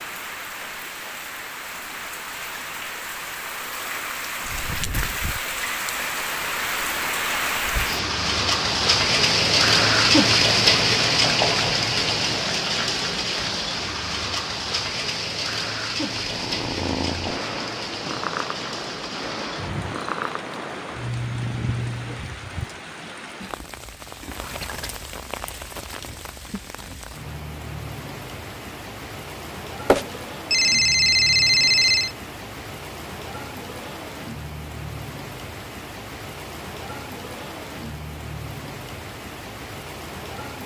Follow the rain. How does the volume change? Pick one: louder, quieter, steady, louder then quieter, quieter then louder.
louder then quieter.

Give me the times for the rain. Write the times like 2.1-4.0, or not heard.
0.0-40.6.